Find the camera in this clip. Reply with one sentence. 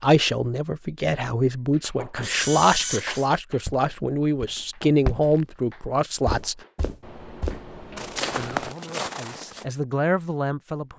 You can hear the camera from 2.2 to 3.3 s and from 7.0 to 8.8 s.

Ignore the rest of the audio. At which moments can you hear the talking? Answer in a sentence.
The talking can be heard from 0.0 to 6.6 s and from 8.3 to 10.9 s.